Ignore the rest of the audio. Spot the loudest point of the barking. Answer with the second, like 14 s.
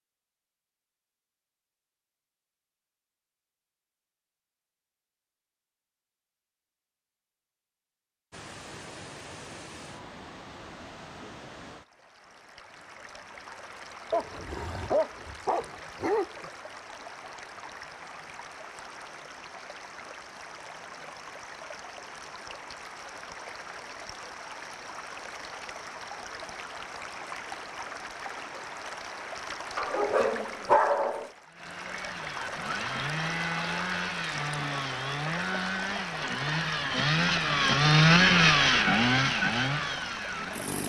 31 s.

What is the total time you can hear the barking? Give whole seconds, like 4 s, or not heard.
4 s.